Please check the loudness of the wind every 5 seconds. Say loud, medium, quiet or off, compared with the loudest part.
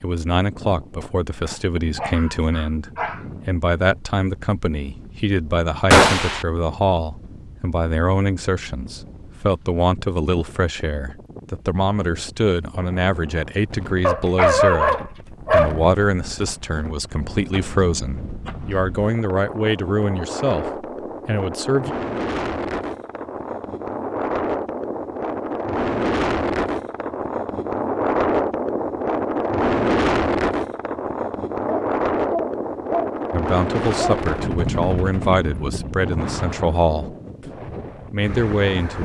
quiet, quiet, quiet, quiet, medium, loud, loud, medium.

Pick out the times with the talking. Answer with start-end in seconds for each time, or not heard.
0.0-21.9, 33.3-37.5, 38.1-39.0.